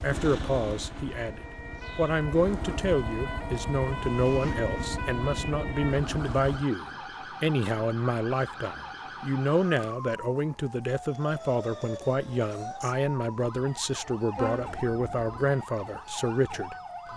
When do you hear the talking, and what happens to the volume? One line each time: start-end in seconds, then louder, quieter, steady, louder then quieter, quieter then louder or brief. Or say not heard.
0.0-17.1 steady.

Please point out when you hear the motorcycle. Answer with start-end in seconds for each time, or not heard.
0.0-6.7.